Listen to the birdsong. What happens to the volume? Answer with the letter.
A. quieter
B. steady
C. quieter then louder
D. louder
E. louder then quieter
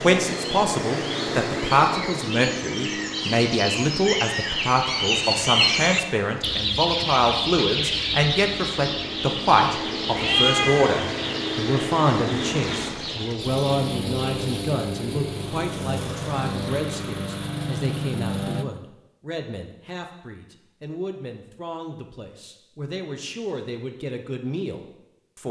E.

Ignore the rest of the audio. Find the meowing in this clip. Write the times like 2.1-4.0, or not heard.
10.2-11.0.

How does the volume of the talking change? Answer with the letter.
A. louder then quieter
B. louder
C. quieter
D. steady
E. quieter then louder
C.